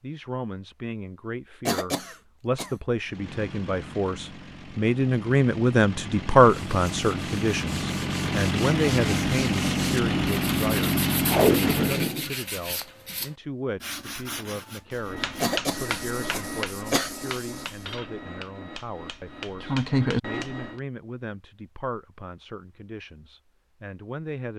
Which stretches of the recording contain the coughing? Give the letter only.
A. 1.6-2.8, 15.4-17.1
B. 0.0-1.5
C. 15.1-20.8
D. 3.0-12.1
A.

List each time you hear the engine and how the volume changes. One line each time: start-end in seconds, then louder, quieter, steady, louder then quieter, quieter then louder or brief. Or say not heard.
3.0-12.1 louder.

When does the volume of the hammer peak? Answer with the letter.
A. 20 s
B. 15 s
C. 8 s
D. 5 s
A.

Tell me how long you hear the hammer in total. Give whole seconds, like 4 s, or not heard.
6 s.